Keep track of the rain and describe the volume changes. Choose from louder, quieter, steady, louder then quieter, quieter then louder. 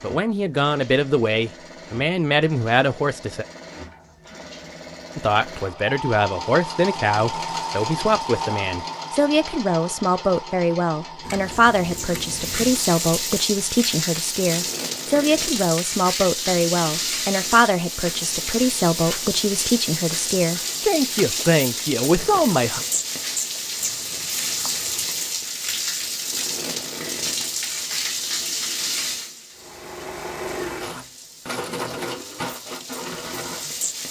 quieter.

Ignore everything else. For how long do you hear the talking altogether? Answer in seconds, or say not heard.
21 s.